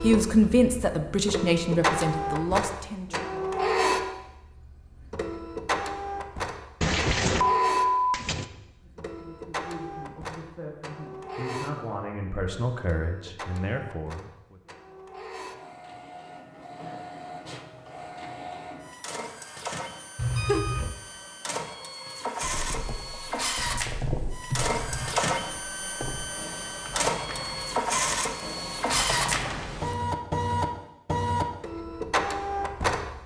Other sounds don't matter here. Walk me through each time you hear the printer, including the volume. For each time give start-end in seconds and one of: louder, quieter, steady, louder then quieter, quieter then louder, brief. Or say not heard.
0.0-33.2 quieter then louder.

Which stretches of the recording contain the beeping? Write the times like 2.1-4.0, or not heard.
6.8-8.4, 20.1-20.9.